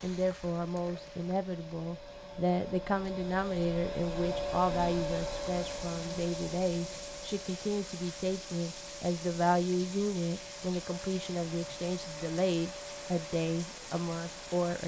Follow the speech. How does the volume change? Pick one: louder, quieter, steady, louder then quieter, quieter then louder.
steady.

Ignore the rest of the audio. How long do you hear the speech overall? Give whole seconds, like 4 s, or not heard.
15 s.